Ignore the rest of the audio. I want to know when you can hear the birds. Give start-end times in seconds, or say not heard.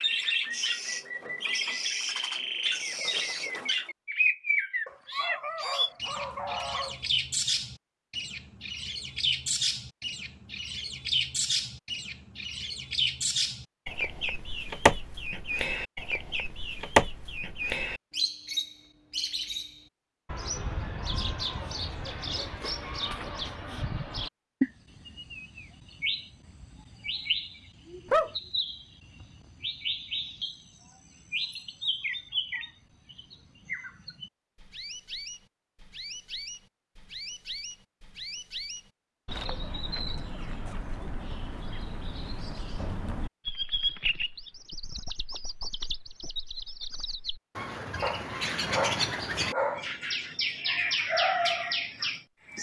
0.0-52.5.